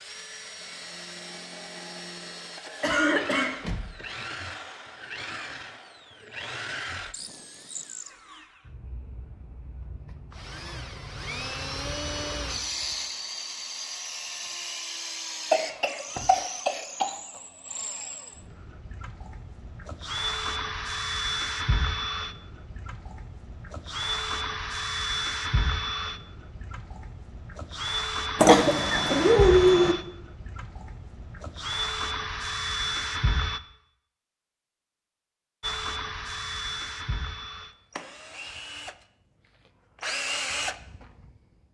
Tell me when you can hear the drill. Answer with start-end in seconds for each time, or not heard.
0.0-33.6, 35.6-41.6.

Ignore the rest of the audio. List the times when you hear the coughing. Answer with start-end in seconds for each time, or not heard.
2.8-3.5, 15.5-17.1, 28.4-29.9.